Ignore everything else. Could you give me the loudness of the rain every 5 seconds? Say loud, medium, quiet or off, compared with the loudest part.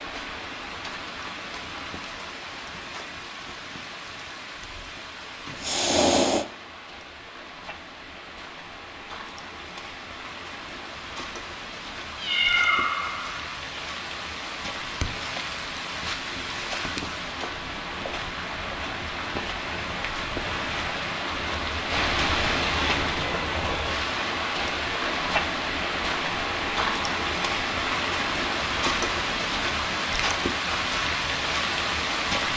medium, quiet, medium, medium, loud, loud, loud.